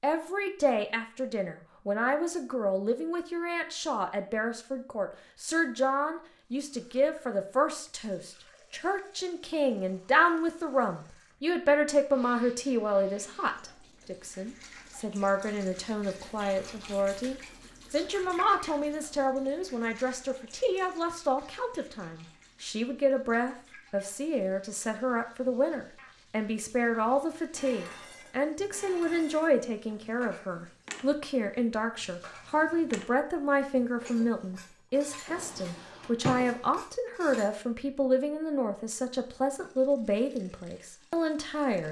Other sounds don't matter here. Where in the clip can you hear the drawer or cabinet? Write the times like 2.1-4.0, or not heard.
35.2-36.8.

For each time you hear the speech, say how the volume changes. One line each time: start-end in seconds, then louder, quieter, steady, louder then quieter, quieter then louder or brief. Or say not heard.
0.0-41.8 steady.